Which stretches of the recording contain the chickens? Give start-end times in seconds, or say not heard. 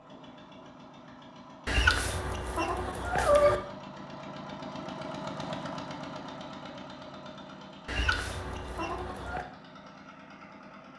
1.6-3.6, 7.8-9.4.